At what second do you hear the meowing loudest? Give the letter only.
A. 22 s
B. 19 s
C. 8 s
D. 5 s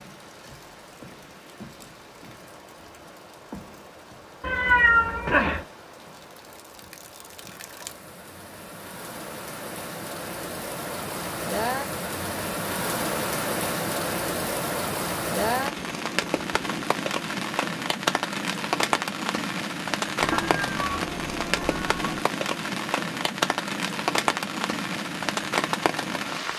D.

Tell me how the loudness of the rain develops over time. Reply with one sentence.
The loudness of the rain goes up.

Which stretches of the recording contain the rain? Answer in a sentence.
You can hear the rain from 0.0 to 26.5 s.